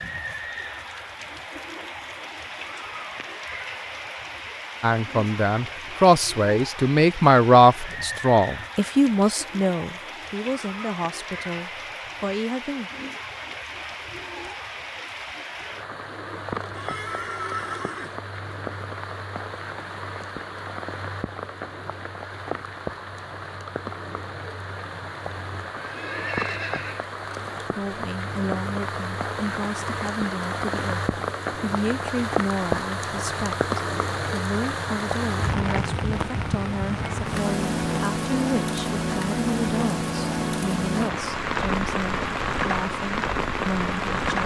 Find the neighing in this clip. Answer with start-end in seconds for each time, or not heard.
16.7-18.2, 25.8-27.1.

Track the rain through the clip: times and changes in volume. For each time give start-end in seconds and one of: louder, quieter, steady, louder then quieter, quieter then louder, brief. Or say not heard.
0.0-44.4 louder.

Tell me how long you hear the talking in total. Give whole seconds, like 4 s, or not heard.
25 s.